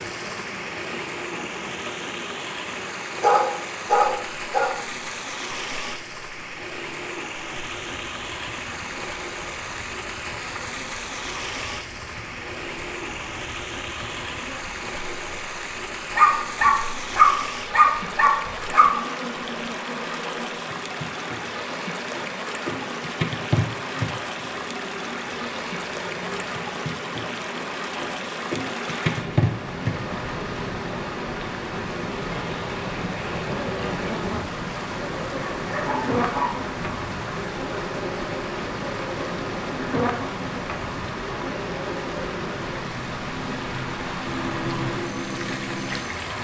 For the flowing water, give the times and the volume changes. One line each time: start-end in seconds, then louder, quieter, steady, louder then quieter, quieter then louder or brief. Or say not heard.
0.0-46.4 steady.